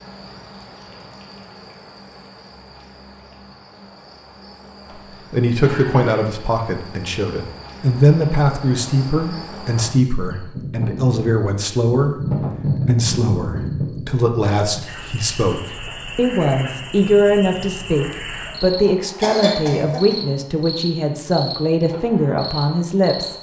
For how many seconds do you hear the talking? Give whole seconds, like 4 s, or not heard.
18 s.